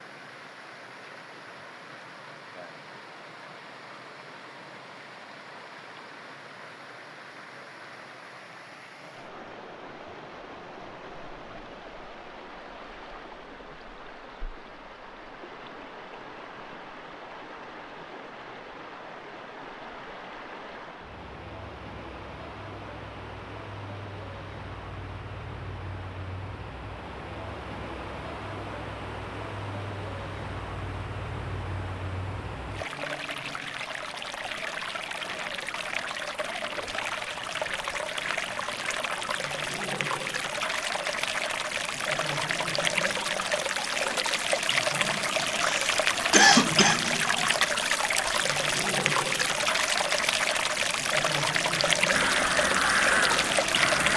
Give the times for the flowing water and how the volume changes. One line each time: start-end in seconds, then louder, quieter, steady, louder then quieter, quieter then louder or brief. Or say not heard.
0.0-54.1 louder.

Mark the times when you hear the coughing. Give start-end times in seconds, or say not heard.
45.6-47.0.